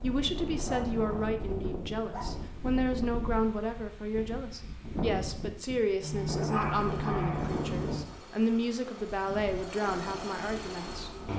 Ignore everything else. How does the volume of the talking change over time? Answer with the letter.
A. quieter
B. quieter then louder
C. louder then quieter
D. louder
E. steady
E.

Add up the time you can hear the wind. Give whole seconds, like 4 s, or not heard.
11 s.